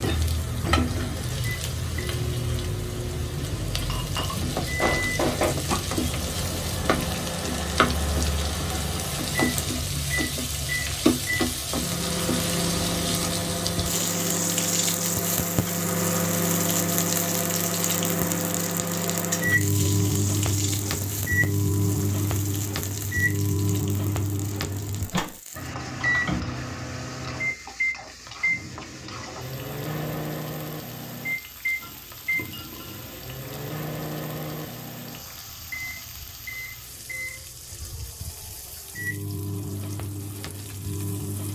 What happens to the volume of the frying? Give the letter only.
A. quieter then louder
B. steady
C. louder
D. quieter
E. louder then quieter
D.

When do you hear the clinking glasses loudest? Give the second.
5 s.